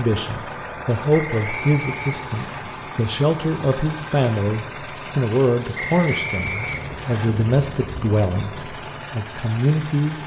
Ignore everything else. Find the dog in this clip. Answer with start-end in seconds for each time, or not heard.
not heard.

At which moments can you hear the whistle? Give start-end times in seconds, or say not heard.
1.1-2.6, 5.8-7.3.